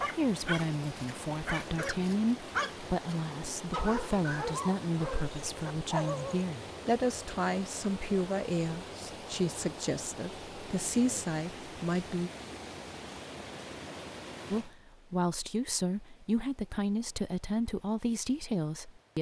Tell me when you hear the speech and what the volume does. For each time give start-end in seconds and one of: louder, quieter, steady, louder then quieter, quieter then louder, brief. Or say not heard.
0.1-12.3 steady
14.5-19.1 steady.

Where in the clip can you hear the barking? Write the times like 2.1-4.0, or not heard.
0.0-6.5.